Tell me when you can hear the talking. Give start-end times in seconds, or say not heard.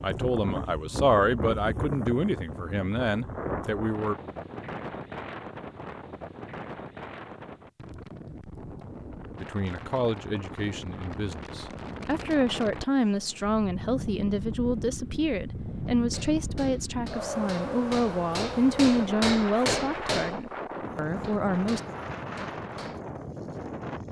0.0-4.2, 9.4-21.8.